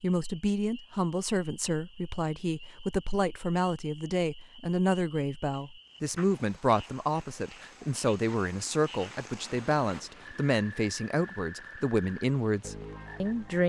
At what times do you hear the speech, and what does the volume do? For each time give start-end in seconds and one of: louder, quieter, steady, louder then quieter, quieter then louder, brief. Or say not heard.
0.0-13.6 steady.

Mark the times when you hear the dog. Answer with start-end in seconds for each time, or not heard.
not heard.